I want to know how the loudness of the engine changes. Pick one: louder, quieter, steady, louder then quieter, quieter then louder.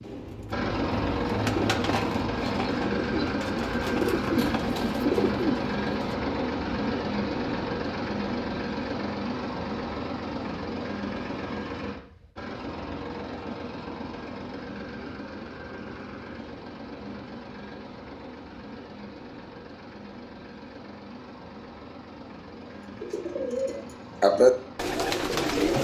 quieter.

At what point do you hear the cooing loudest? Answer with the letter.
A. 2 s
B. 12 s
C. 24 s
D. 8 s
C.